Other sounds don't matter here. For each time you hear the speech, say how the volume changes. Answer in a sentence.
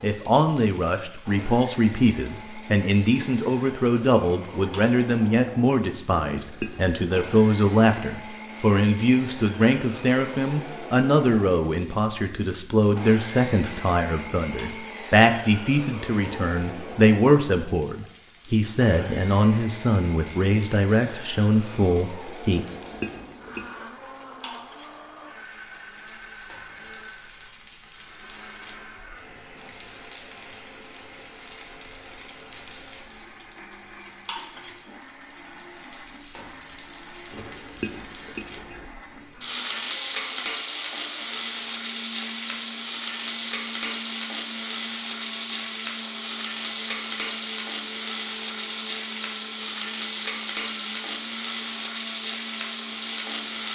You can hear the speech from 0.0 to 22.6 s, at a steady volume.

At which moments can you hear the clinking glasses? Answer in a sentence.
The clinking glasses can be heard from 6.3 to 7.3 s, from 22.5 to 23.7 s and from 37.3 to 38.9 s.